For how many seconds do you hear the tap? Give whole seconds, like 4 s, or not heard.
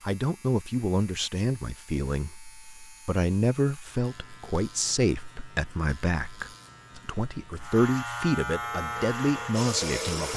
2 s.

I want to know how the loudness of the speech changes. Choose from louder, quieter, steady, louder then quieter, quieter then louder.
steady.